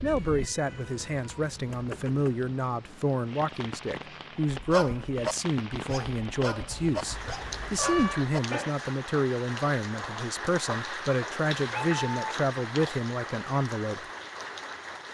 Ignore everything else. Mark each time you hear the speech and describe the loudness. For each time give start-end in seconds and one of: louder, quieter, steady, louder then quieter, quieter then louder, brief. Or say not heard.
0.0-14.1 steady.